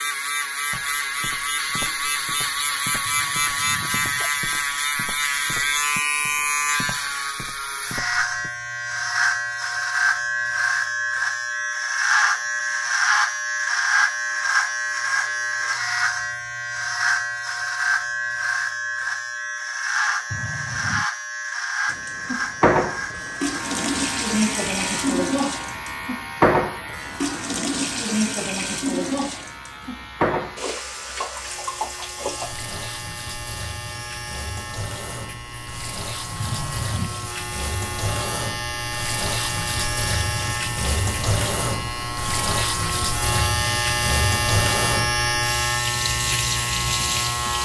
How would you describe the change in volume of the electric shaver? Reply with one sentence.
The volume of the electric shaver goes down, then up.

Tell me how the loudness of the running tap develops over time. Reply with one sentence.
The volume of the running tap goes down, then up.